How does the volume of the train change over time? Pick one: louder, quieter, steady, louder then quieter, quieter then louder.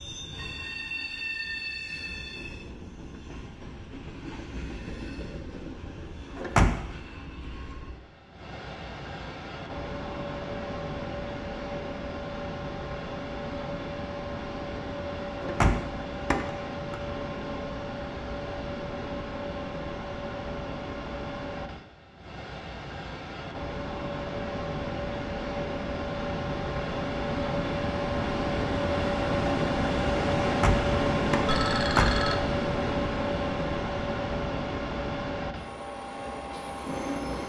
louder.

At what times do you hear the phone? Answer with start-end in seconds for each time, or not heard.
31.4-32.4.